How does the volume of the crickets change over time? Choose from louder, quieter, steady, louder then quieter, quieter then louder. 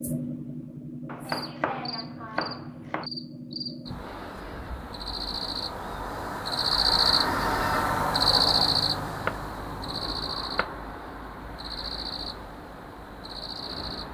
louder then quieter.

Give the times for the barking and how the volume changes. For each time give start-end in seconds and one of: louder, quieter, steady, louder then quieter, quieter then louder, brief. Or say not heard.
not heard.